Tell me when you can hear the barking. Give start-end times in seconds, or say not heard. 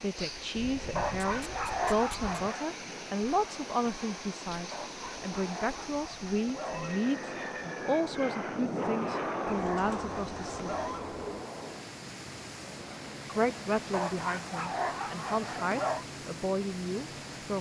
0.9-2.8, 4.7-7.0, 8.8-11.2, 13.9-16.1.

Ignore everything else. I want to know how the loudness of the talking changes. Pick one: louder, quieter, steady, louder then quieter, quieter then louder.
steady.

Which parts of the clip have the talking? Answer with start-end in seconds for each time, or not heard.
0.0-10.8, 13.2-17.5.